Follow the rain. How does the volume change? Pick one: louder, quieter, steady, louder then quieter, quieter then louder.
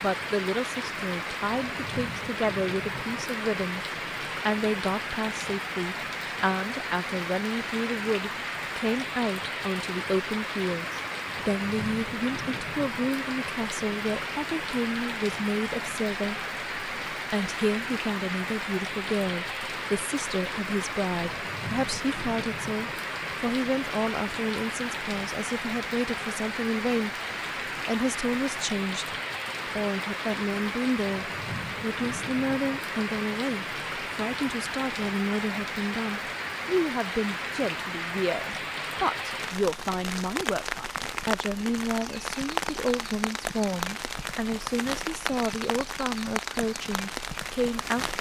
steady.